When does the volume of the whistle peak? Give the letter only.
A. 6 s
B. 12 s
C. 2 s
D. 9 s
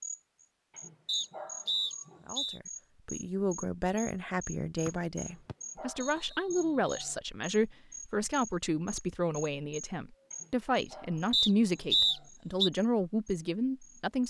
B.